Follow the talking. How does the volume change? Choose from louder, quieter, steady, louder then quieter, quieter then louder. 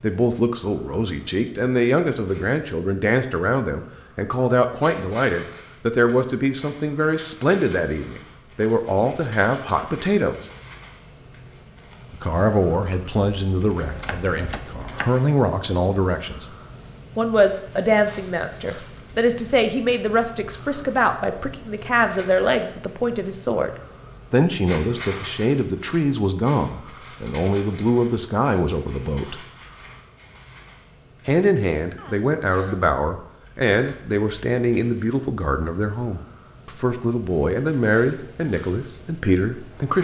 steady.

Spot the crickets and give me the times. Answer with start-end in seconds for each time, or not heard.
0.0-39.9.